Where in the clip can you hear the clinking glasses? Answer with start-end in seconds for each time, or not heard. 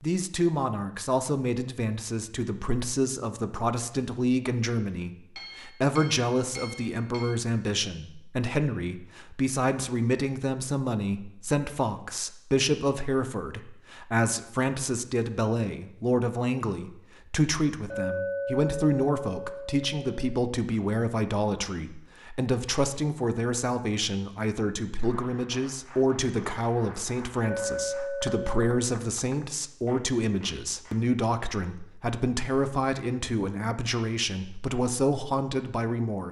5.3-7.3, 17.9-20.3, 27.4-28.6.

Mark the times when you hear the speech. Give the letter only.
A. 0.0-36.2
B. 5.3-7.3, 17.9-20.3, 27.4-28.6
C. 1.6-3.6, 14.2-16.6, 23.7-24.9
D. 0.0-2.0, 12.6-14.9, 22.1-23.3
A.